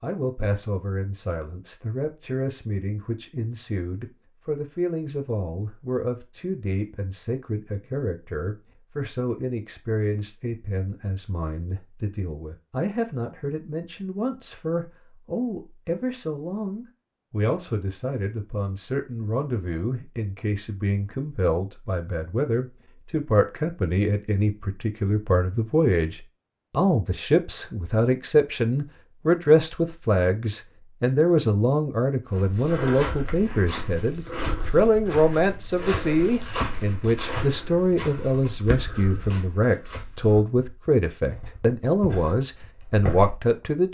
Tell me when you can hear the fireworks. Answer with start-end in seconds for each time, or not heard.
not heard.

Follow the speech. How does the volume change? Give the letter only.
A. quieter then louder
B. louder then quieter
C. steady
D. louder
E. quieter
D.